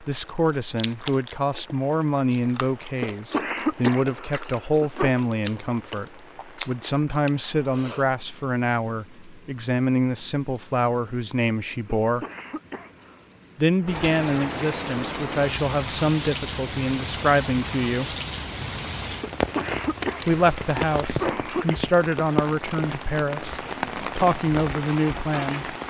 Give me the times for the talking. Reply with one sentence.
The talking can be heard from 0.0 to 12.2 s, from 13.6 to 18.1 s and from 20.2 to 25.8 s.